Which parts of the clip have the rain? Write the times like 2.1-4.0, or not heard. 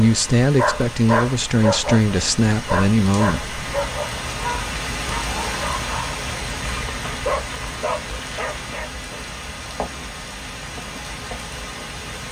0.0-12.2.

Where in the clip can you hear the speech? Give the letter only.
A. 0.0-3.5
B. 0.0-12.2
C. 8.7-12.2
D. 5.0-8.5
A.